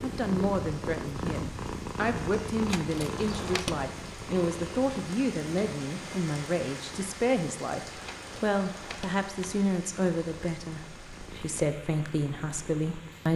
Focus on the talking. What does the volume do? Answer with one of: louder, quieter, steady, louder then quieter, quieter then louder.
steady.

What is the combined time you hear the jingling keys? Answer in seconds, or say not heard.
3 s.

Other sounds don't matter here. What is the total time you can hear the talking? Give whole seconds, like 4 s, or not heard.
13 s.